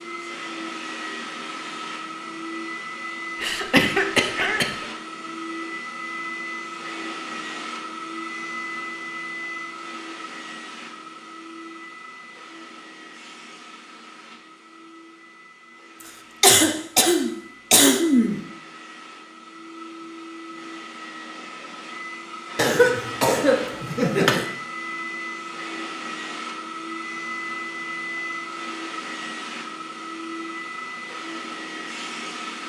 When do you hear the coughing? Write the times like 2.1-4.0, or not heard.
3.4-4.8, 16.4-18.4, 22.6-24.4.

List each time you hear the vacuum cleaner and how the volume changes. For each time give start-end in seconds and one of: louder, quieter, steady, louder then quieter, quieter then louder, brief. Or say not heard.
0.0-32.6 quieter then louder.